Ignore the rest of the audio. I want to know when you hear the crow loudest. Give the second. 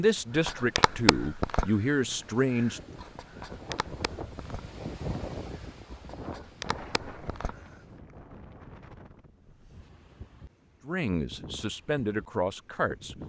1 s.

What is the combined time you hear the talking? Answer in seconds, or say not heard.
5 s.